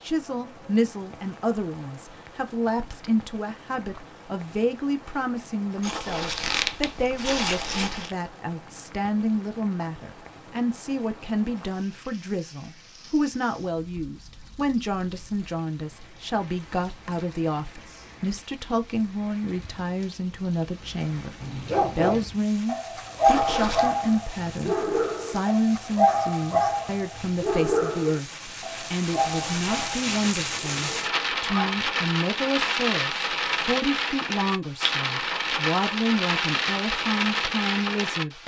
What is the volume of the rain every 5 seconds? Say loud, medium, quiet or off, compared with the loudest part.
quiet, quiet, quiet, quiet, quiet, medium, loud, loud.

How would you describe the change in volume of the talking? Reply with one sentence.
The loudness of the talking stays about the same.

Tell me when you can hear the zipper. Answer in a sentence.
You can hear the zipper from 5.8 to 8.2 s, from 23.2 to 23.9 s and from 29.1 to 29.7 s.